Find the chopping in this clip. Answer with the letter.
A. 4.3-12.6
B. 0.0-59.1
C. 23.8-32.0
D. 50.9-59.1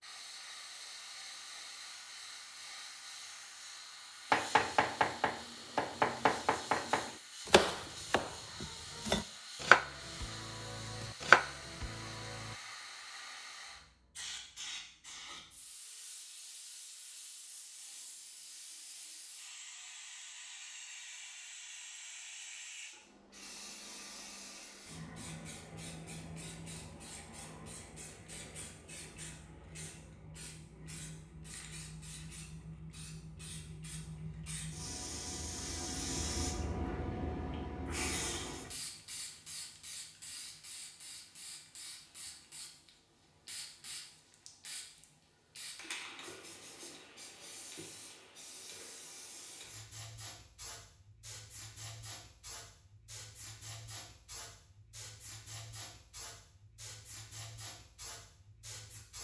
A.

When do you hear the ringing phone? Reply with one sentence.
The ringing phone can't be heard in this clip.